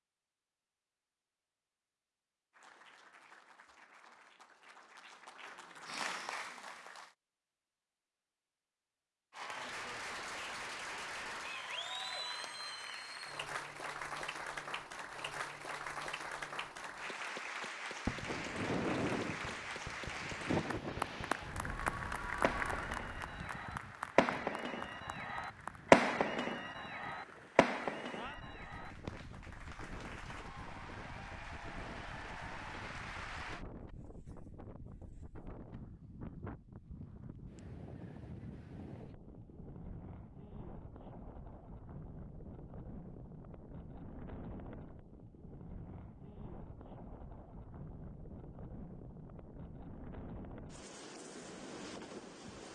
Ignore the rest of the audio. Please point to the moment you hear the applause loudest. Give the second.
22 s.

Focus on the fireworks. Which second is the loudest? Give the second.
26 s.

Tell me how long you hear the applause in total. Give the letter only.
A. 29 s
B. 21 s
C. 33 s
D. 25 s
A.